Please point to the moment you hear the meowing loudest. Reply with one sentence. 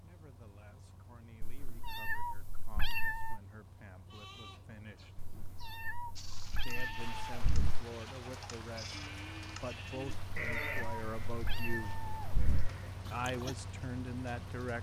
The loudest moment of the meowing is at 3 seconds.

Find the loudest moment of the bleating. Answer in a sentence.
The volume of the bleating peaks at 11 seconds.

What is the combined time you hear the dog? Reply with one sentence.
The dog can't be heard in this clip.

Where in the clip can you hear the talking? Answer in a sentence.
The talking can be heard from 0.0 to 5.2 s, from 6.6 to 12.0 s and from 13.1 to 14.7 s.